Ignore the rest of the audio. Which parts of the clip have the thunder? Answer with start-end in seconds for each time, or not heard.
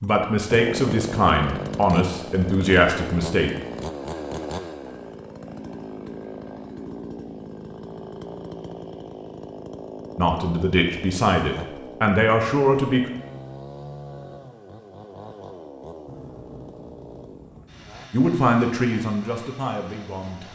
16.1-18.1.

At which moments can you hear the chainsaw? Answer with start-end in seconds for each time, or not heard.
0.0-20.5.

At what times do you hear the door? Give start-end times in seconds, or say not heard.
not heard.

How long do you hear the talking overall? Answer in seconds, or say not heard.
9 s.